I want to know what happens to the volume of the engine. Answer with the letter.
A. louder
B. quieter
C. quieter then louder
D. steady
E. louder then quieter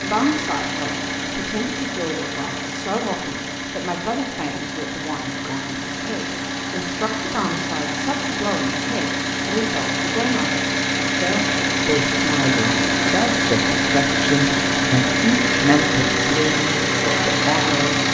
A.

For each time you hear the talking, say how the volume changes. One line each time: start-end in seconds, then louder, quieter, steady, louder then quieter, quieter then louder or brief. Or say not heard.
0.0-18.0 louder.